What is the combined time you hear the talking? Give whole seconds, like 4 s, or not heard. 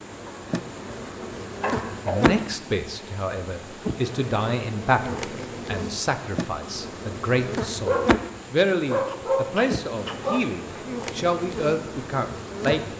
11 s.